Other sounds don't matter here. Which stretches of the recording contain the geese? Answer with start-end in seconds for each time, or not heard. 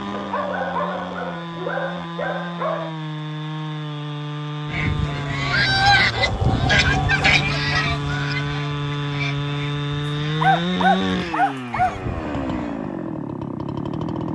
4.7-12.8.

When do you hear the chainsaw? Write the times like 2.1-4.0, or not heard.
0.0-14.3.